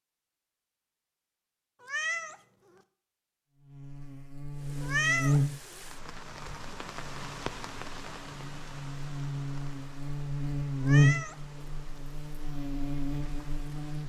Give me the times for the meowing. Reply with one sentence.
The meowing can be heard from 1.8 to 2.8 s, from 4.8 to 5.8 s and from 10.8 to 11.8 s.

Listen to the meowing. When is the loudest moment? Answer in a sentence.
The volume of the meowing peaks at 5 seconds.